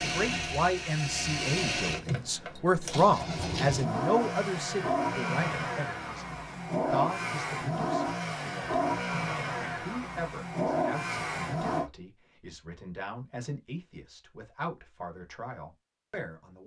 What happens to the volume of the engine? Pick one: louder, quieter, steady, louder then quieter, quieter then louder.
steady.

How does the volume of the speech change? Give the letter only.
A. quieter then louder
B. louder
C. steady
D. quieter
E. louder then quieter
D.